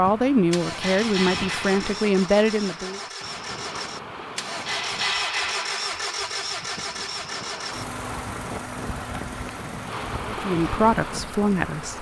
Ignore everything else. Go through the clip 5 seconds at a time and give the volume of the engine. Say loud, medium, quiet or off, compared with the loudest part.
loud, loud, medium.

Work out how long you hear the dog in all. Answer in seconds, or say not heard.
not heard.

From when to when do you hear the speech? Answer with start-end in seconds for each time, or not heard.
0.0-3.0, 10.2-11.9.